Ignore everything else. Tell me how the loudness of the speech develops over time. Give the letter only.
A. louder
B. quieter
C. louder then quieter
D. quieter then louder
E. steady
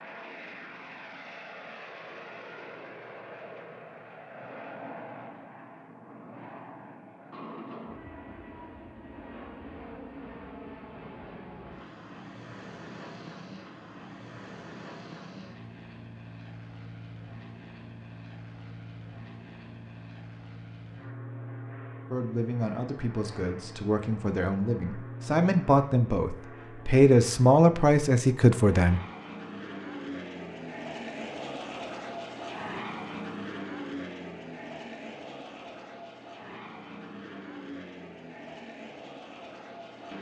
A.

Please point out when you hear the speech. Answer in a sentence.
The speech can be heard from 22.1 to 29.0 s.